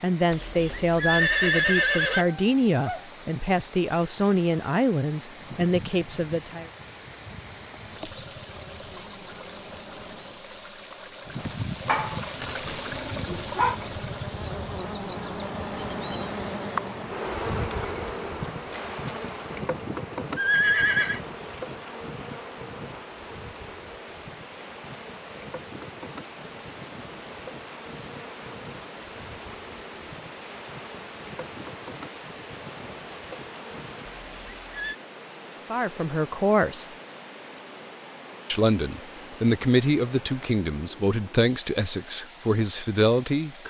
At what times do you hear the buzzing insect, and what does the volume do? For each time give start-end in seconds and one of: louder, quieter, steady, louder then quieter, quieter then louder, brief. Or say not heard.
5.2-34.2 louder then quieter.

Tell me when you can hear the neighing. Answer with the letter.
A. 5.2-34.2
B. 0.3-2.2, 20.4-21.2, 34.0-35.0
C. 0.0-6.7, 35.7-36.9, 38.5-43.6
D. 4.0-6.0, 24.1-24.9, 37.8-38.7
B.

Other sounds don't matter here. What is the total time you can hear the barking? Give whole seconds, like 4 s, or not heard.
2 s.